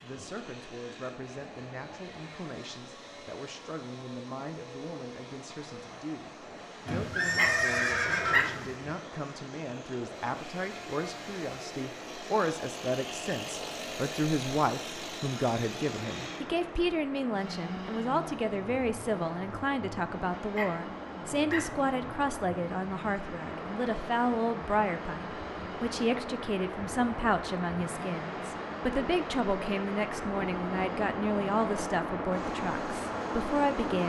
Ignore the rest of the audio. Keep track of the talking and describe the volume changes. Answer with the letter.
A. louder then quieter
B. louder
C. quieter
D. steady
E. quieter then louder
B.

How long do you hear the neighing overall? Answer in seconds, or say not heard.
2 s.